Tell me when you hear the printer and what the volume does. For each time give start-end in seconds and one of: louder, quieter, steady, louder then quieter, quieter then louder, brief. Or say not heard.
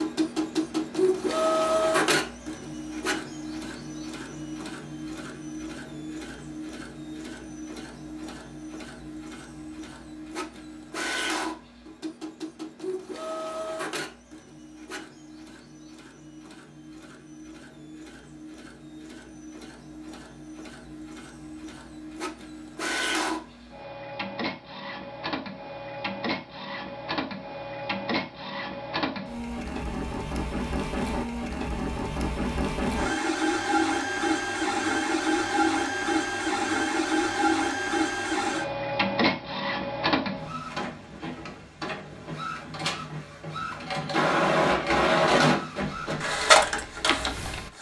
0.0-47.7 quieter then louder.